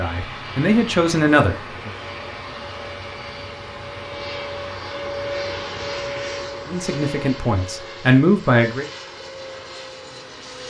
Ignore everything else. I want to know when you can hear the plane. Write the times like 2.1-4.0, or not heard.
0.0-10.6.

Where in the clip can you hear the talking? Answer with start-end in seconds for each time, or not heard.
0.0-1.9, 6.7-8.8.